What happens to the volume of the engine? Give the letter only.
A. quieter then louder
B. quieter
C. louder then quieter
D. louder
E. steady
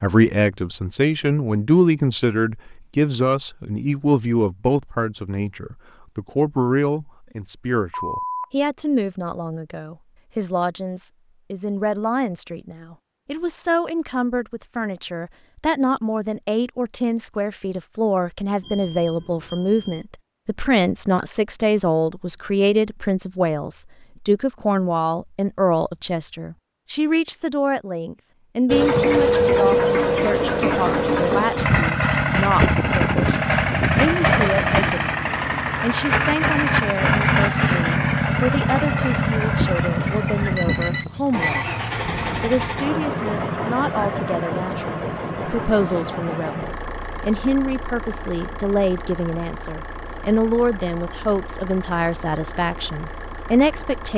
B.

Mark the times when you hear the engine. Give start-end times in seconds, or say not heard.
28.6-54.1.